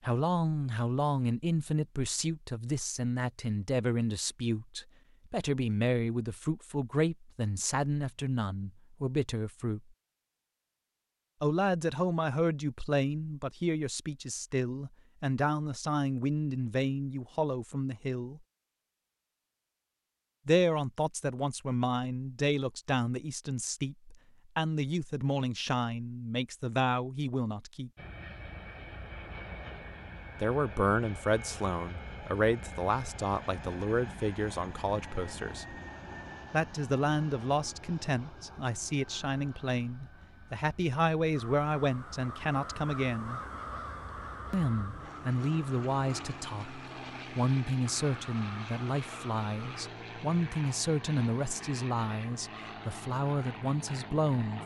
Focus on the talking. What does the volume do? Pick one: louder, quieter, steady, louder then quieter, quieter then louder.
steady.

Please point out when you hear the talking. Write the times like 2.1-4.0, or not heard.
0.0-9.8, 11.4-18.4, 20.4-27.9, 30.4-35.8, 36.5-43.4, 44.5-54.6.